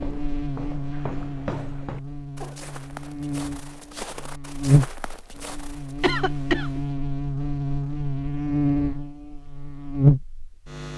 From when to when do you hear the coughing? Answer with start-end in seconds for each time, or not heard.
1.4-2.6, 6.0-6.8.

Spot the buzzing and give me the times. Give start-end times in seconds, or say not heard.
0.0-10.9.